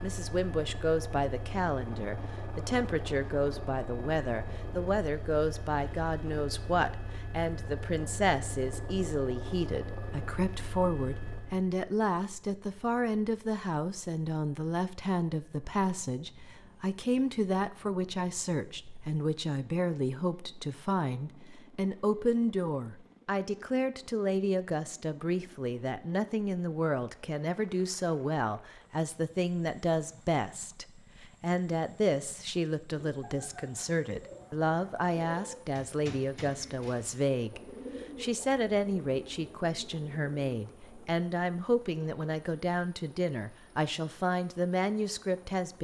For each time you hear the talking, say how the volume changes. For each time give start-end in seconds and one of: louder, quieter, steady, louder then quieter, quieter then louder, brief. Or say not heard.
0.0-37.6 steady
38.2-45.7 steady.